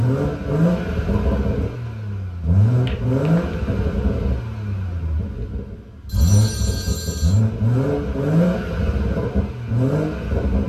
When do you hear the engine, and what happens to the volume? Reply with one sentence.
You can hear the engine from 0.0 to 10.6 s, getting quieter then louder.